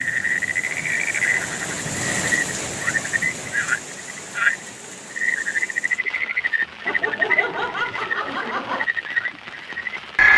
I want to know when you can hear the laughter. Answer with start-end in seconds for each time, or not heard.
6.8-8.8.